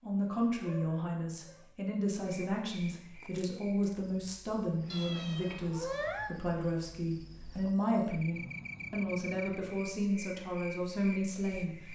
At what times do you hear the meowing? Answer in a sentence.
The meowing can be heard from 0.6 to 1.6 s, from 4.9 to 6.3 s and from 8.3 to 9.8 s.